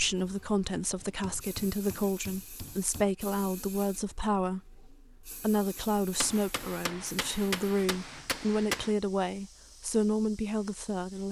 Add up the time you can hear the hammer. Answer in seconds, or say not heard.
5 s.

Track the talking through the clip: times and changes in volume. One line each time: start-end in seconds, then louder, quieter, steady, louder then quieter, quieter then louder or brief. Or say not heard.
0.0-11.2 steady.